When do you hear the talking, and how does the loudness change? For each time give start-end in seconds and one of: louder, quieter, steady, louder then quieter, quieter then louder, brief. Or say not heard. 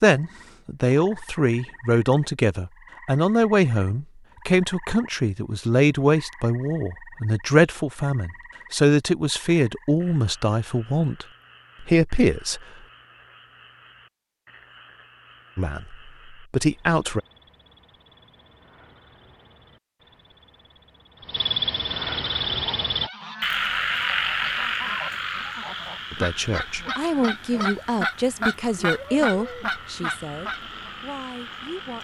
0.0-12.7 steady
15.6-17.2 brief
26.1-32.0 quieter.